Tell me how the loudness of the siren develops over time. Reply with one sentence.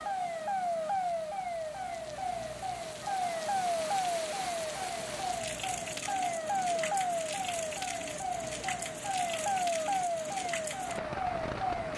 The volume of the siren stays about the same.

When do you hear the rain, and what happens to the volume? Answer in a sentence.
You can hear the rain from 0.0 to 11.9 s, getting louder.